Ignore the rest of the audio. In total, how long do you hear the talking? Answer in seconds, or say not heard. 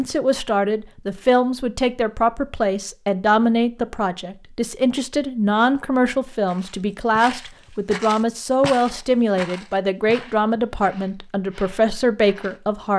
13 s.